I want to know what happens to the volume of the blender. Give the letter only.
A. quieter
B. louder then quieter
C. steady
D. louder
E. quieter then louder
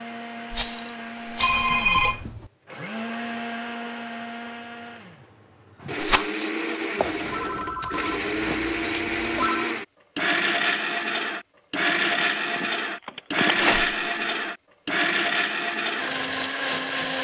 D.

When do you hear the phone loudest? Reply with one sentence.
The volume of the phone peaks at 2 seconds.